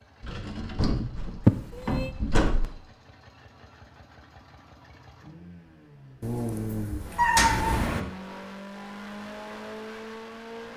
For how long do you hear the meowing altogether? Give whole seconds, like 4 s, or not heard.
2 s.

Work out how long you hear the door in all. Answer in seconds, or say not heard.
3 s.